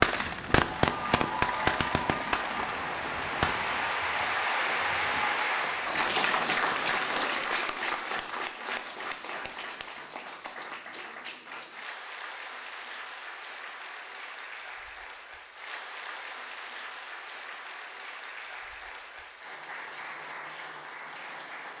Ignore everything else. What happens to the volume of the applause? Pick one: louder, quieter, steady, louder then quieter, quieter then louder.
quieter.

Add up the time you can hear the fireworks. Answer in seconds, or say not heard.
4 s.